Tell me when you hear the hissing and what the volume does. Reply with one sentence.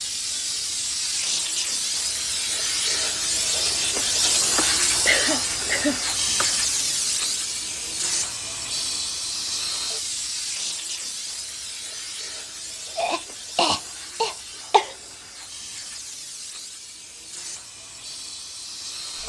The hissing can be heard from 0.0 to 19.2 s, getting quieter.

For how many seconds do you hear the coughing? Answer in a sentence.
You can hear the coughing for 4 seconds altogether.